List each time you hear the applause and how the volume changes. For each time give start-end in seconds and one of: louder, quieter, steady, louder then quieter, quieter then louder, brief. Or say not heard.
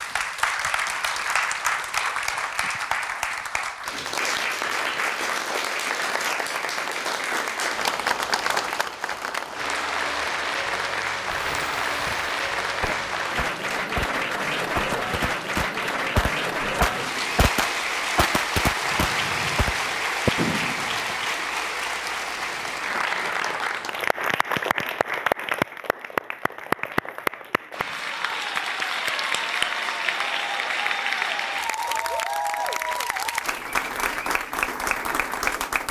0.0-35.8 steady.